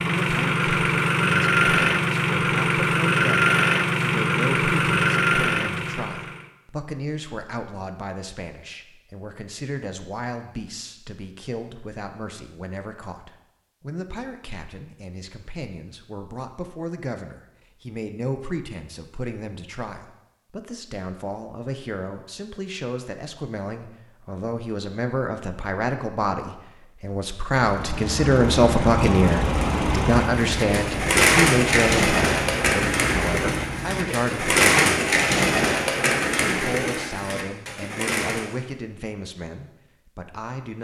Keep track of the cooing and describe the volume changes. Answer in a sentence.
The loudness of the cooing goes down.